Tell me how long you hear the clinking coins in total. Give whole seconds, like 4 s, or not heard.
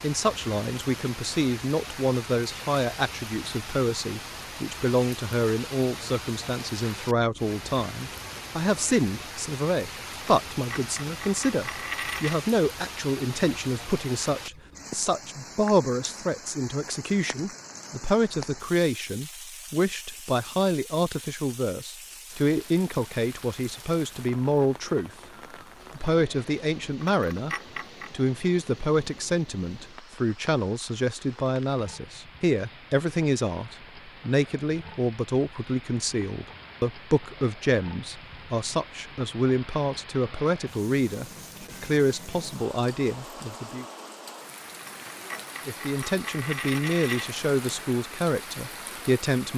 6 s.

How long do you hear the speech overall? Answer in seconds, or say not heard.
47 s.